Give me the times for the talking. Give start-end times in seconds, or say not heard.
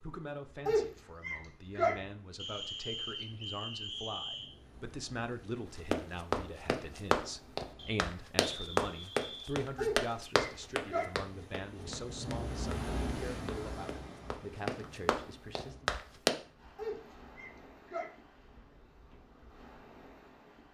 0.0-15.9.